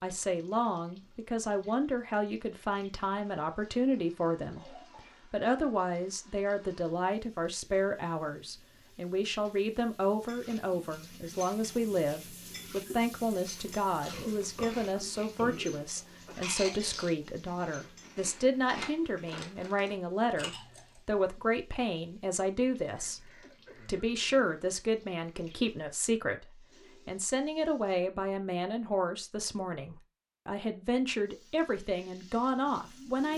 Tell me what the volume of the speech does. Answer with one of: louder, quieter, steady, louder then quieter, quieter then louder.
steady.